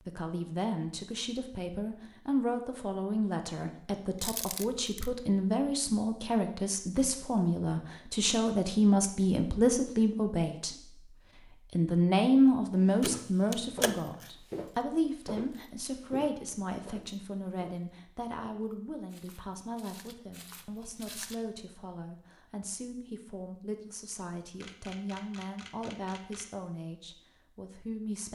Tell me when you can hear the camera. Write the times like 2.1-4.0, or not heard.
4.2-5.1, 13.0-14.3, 24.6-26.5.